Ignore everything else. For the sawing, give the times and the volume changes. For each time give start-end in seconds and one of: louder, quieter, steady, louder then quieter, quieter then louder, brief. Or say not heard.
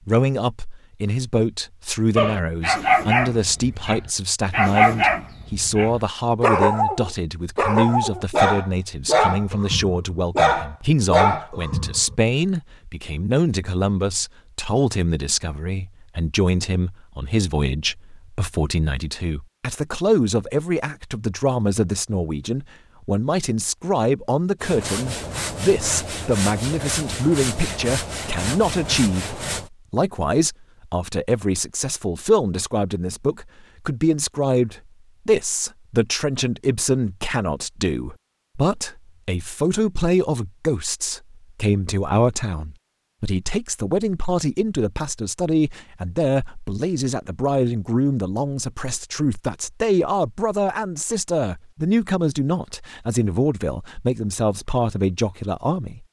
24.6-29.7 steady.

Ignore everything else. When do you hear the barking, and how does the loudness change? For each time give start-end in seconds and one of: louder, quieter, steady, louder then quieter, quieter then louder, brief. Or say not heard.
2.1-12.2 steady.